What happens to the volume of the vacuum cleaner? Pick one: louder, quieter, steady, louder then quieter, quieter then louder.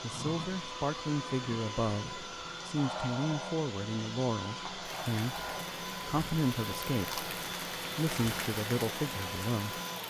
steady.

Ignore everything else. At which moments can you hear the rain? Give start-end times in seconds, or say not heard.
4.8-10.0.